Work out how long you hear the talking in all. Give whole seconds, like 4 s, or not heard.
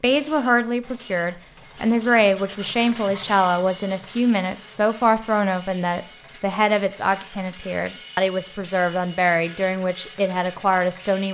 11 s.